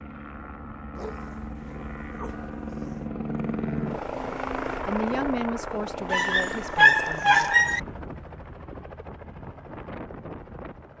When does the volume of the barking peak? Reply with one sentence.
The volume of the barking peaks at 7 seconds.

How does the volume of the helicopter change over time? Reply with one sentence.
The loudness of the helicopter goes up, then down.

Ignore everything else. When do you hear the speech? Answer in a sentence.
You can hear the speech from 4.8 to 7.5 s.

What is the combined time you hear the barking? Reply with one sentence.
The barking can be heard for 4 seconds in total.